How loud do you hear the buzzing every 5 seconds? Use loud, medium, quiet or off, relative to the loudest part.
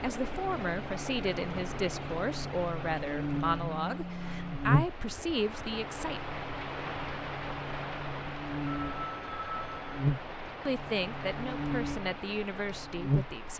loud, medium, loud.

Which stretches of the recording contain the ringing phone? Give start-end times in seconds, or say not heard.
3.5-4.7, 8.7-9.9.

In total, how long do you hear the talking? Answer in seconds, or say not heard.
9 s.